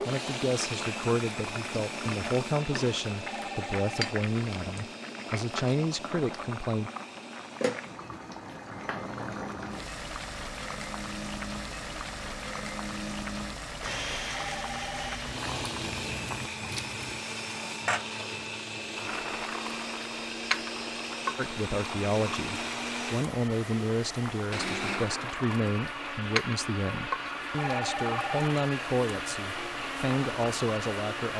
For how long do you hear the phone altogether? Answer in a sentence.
You can hear the phone for 3 seconds altogether.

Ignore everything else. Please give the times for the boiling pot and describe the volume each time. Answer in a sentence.
You can hear the boiling pot from 0.0 to 31.3 s, at a steady volume.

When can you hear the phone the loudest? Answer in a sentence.
The loudest moment of the phone is at 28 seconds.